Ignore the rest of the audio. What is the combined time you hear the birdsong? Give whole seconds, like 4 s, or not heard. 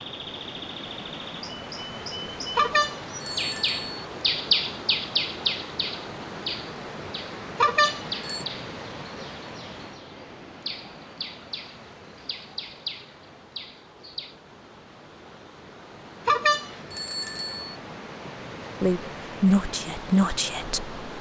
14 s.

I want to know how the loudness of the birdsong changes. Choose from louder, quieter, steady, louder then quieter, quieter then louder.
louder then quieter.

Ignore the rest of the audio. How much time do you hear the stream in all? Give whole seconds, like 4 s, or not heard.
21 s.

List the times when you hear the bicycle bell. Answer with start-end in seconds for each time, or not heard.
2.5-4.0, 7.5-8.4, 16.2-17.8.